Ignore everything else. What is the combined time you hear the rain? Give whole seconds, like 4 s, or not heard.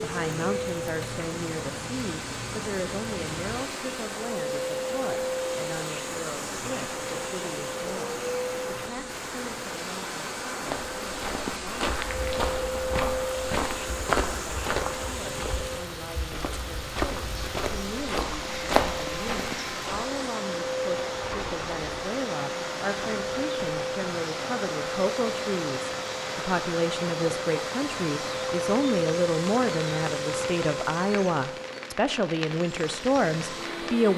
34 s.